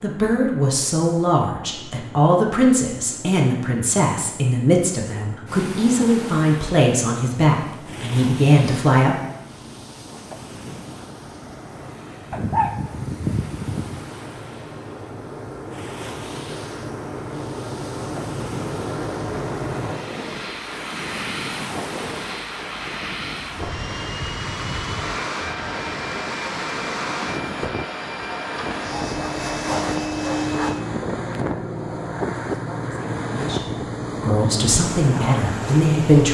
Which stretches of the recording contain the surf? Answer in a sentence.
You can hear the surf from 5.5 to 36.2 s.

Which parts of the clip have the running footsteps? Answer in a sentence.
The running footsteps can't be heard in this clip.